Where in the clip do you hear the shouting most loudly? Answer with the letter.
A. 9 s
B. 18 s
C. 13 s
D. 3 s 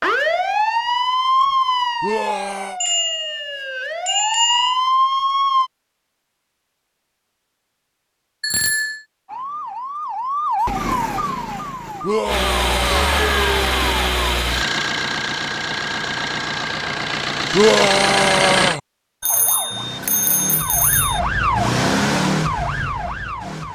B.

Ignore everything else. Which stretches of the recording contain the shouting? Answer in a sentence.
You can hear the shouting from 2.0 to 2.8 s, from 12.0 to 13.3 s and from 17.5 to 18.8 s.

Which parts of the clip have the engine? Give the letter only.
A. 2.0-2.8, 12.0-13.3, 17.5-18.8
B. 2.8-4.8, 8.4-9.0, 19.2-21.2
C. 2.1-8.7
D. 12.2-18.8
D.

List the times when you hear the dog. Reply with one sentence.
The dog can't be heard in this clip.